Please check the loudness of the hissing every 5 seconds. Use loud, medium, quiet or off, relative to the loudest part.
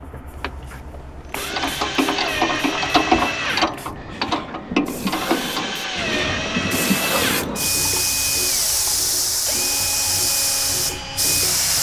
quiet, loud, loud.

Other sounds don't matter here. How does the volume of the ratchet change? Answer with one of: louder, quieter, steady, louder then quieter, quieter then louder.
quieter.